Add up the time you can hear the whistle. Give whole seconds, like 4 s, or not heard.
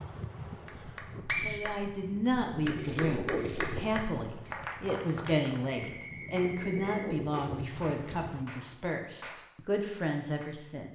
2 s.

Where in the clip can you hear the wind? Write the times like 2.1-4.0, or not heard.
0.0-8.4.